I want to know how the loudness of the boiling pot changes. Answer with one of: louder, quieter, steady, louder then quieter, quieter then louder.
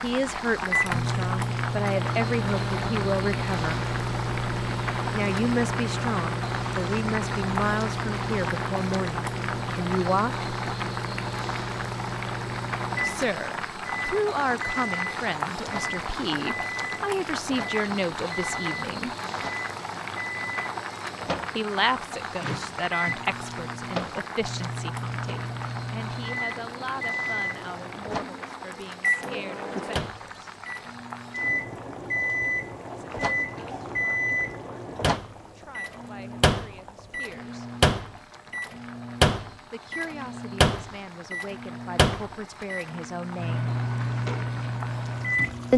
quieter.